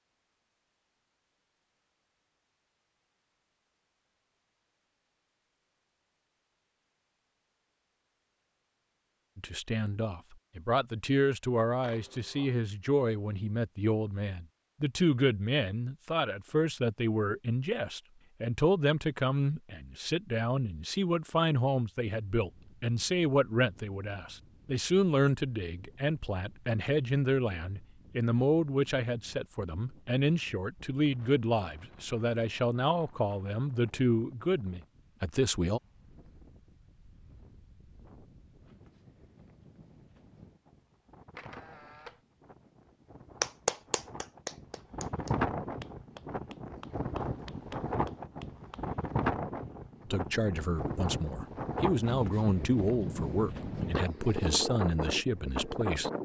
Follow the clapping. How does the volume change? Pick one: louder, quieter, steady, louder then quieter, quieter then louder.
quieter.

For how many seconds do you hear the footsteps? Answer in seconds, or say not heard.
not heard.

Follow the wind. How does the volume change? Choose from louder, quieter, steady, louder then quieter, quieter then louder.
louder.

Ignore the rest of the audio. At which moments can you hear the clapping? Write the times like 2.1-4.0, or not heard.
43.4-48.9.